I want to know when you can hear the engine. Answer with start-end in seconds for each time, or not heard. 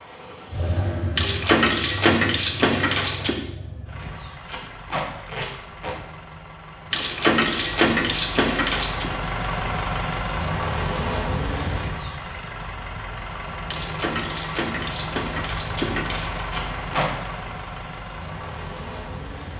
0.0-19.5.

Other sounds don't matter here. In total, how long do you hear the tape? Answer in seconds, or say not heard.
2 s.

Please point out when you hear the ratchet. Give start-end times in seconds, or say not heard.
1.1-3.4, 6.9-9.1, 13.7-16.4.